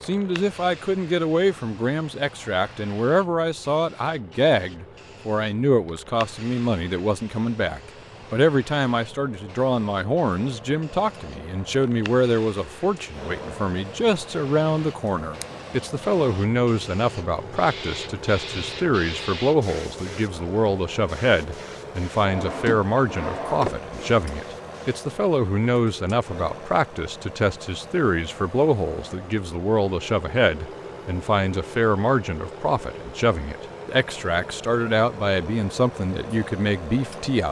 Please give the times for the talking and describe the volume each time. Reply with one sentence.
You can hear the talking from 0.0 to 37.4 s, at a steady volume.